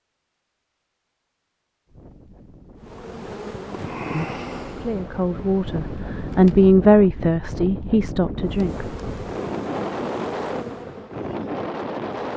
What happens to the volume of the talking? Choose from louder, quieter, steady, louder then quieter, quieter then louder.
louder then quieter.